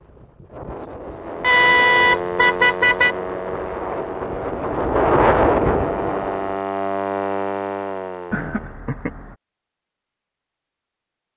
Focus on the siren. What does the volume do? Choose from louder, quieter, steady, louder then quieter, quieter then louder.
quieter then louder.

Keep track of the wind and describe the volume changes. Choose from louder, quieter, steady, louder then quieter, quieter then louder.
louder.